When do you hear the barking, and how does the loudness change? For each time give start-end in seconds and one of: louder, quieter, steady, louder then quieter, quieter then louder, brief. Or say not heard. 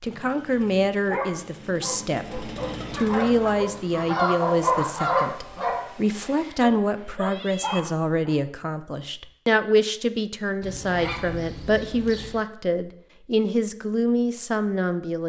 1.1-8.3 louder then quieter.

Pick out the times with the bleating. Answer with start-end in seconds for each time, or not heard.
not heard.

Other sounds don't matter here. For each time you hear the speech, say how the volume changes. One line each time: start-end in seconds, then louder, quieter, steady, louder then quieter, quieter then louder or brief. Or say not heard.
0.0-15.2 steady.